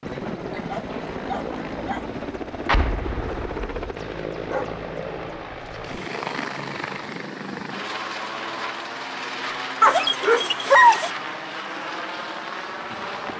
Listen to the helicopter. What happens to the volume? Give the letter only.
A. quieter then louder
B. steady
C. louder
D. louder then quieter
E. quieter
B.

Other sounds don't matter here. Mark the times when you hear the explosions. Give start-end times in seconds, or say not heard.
2.6-3.9.